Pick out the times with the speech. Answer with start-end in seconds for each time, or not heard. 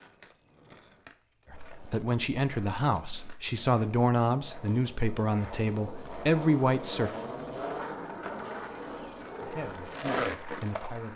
1.5-7.1, 9.4-11.1.